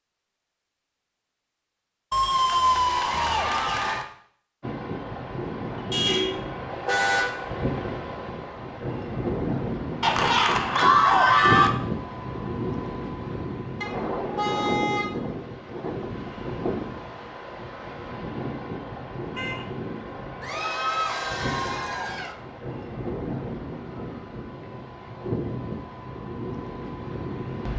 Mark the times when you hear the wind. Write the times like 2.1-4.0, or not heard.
4.6-27.7.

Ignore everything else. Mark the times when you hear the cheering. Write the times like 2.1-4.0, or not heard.
2.1-4.0, 10.0-11.7, 20.4-22.4.